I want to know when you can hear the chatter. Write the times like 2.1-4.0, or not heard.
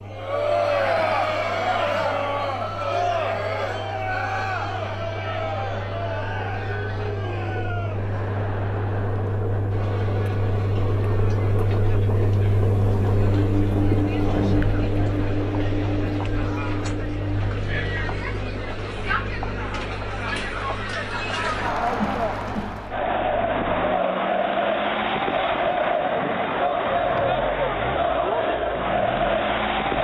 0.1-29.9.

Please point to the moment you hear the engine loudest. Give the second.
14 s.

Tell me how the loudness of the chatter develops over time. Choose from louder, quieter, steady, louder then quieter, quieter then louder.
quieter then louder.